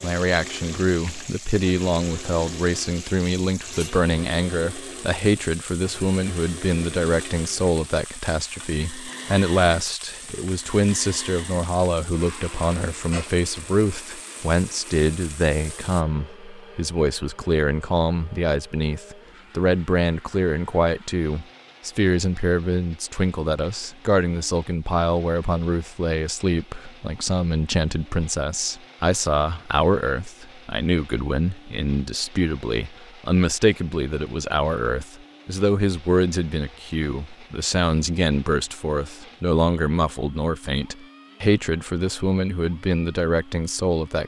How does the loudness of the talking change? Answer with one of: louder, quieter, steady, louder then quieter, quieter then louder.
steady.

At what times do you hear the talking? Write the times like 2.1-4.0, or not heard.
0.0-44.2.